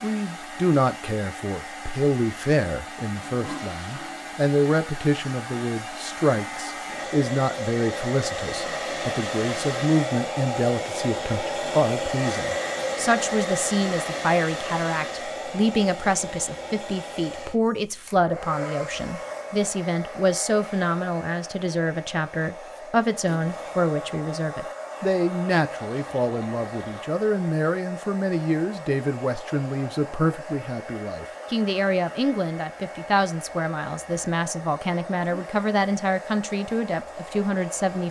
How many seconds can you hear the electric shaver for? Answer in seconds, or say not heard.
not heard.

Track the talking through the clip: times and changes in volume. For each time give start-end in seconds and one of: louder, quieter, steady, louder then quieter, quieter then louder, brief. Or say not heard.
0.0-38.0 steady.